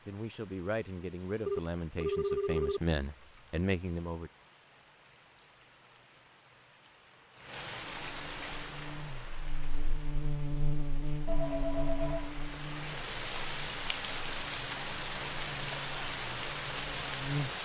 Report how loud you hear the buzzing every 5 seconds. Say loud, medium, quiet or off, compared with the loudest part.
off, medium, loud, loud.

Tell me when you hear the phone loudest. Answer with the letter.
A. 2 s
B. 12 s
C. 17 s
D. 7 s
A.